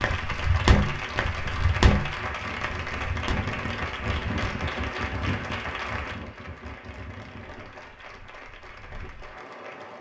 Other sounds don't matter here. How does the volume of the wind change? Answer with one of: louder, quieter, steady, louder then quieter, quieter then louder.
louder then quieter.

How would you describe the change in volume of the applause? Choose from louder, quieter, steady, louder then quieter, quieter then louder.
quieter.